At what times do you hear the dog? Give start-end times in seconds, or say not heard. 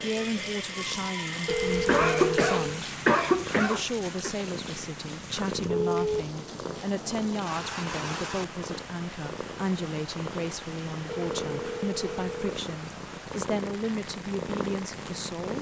not heard.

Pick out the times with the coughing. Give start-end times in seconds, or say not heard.
1.9-4.3.